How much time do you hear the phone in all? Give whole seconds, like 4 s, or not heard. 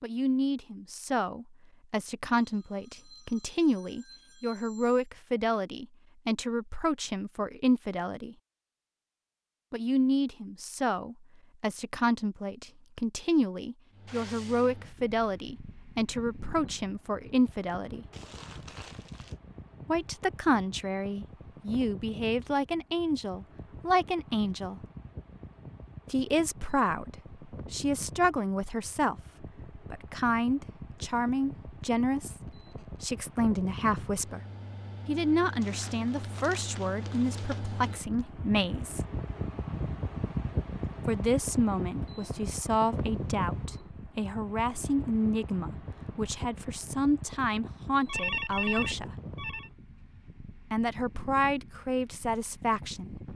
5 s.